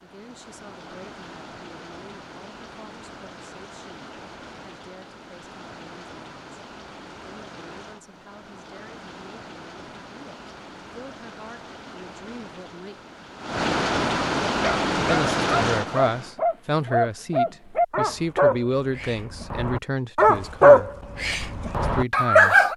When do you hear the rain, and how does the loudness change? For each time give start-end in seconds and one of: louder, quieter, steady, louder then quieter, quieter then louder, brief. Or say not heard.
0.0-16.4 louder.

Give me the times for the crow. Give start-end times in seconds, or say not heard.
not heard.